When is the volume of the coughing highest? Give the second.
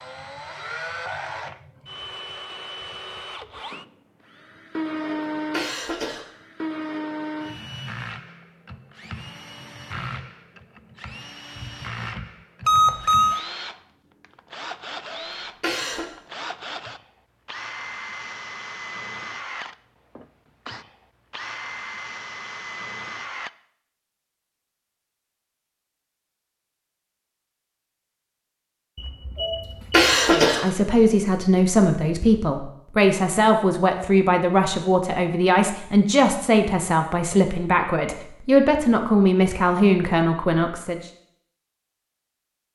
30 s.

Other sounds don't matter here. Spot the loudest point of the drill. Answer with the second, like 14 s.
5 s.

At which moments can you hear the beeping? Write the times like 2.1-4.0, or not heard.
12.7-13.4, 28.9-30.1.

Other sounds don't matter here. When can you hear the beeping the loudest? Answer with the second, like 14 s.
13 s.